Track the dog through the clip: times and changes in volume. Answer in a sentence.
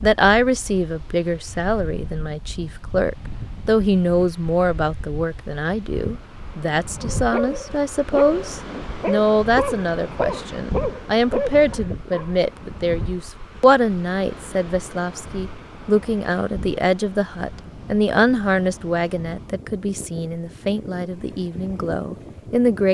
The dog can be heard from 7.1 to 12.4 s, at a steady volume.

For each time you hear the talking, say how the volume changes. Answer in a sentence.
You can hear the talking from 0.0 to 22.8 s, at a steady volume.